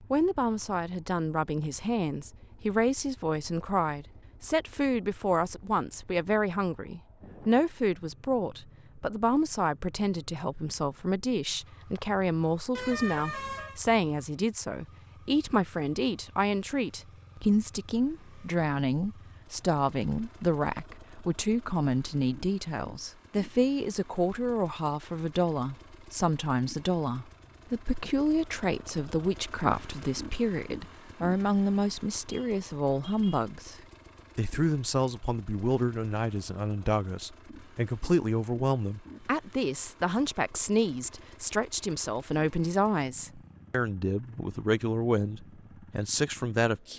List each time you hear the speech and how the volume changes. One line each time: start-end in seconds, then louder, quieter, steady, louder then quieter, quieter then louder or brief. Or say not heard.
0.1-46.9 steady.